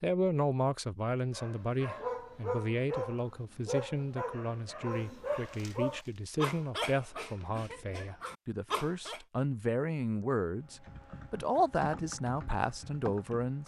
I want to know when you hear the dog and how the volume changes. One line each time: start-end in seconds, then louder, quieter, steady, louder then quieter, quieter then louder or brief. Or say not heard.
1.3-9.2 steady.